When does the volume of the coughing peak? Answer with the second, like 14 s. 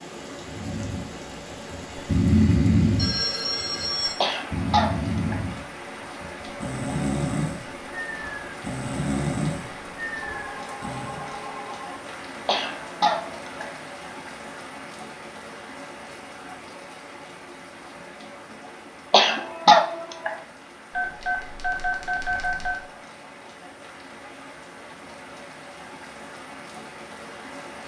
20 s.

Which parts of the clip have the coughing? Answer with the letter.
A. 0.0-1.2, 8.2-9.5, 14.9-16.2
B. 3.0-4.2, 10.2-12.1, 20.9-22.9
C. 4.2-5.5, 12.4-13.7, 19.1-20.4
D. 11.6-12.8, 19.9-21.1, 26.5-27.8
C.